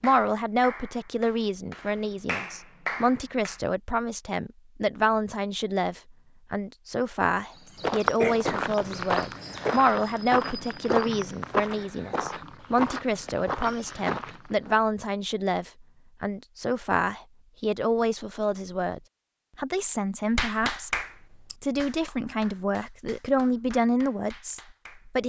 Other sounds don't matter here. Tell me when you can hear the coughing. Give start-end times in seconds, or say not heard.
8.2-9.6.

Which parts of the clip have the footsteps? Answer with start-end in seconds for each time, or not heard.
7.7-14.8.